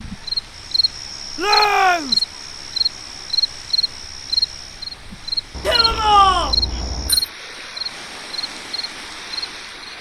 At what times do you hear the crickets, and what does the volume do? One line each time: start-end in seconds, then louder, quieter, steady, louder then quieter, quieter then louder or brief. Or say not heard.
0.0-9.9 quieter.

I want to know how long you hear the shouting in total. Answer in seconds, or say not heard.
2 s.